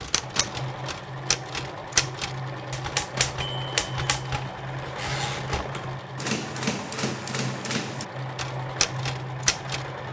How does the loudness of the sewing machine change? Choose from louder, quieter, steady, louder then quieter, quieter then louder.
steady.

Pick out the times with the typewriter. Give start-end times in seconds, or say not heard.
0.0-9.8.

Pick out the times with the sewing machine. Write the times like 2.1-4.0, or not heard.
0.0-10.0.